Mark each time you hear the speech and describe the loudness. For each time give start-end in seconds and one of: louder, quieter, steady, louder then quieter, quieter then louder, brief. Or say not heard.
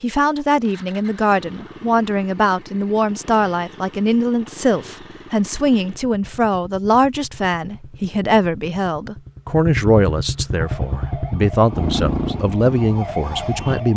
0.0-13.9 steady.